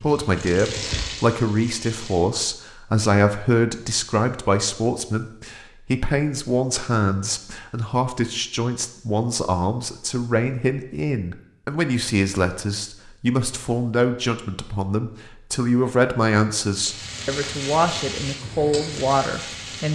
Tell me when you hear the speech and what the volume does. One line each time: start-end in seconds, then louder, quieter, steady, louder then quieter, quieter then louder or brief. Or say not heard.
0.0-19.8 steady.